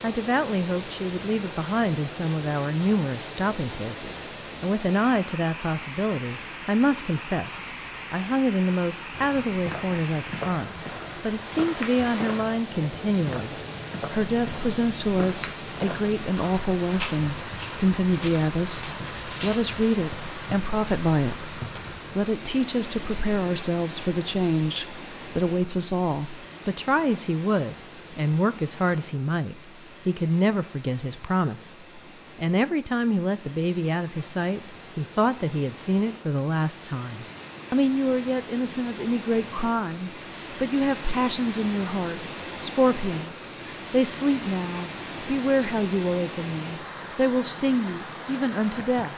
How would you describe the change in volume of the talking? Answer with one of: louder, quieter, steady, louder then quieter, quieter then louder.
steady.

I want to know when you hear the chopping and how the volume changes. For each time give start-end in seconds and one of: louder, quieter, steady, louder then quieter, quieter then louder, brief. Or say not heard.
not heard.